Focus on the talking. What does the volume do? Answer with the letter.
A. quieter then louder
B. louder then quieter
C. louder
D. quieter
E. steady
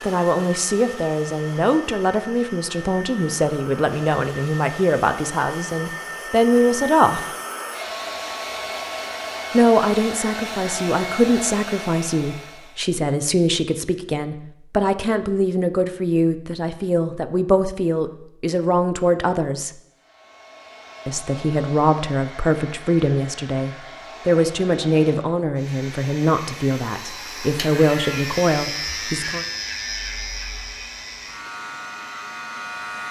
E.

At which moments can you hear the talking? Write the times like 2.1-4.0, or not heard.
0.0-7.2, 9.5-19.7, 21.1-29.4.